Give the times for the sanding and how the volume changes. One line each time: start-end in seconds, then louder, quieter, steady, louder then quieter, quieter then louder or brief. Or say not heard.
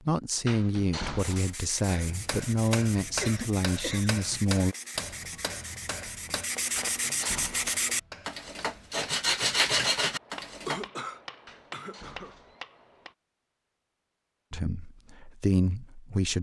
1.1-10.8 louder.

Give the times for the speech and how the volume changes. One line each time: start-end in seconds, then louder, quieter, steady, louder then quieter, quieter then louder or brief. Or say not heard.
0.1-4.8 steady
14.5-16.3 brief.